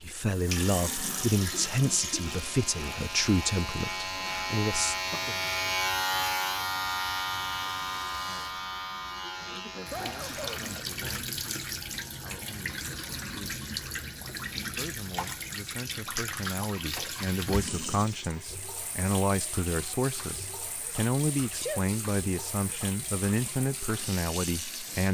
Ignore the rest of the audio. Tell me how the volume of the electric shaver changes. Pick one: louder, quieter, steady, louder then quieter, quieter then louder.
louder then quieter.